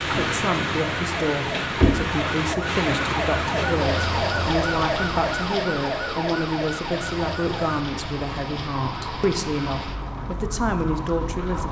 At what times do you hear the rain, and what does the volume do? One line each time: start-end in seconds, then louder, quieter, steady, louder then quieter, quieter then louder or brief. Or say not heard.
0.0-11.6 quieter.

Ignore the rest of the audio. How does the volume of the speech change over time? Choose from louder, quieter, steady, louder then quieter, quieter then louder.
steady.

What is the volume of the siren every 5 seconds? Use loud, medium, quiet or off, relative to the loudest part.
loud, loud, medium.